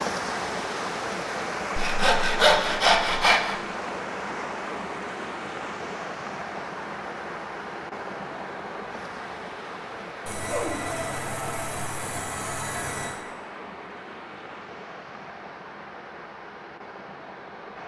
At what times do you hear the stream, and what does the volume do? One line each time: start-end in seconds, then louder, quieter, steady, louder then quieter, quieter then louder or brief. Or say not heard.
0.0-17.8 quieter.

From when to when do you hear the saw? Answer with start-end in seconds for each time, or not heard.
1.8-3.5, 10.2-13.2.